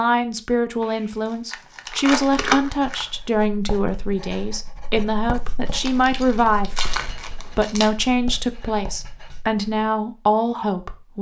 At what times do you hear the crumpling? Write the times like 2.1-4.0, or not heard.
0.8-3.1, 5.7-7.9.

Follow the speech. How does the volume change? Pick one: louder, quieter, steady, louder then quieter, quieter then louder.
steady.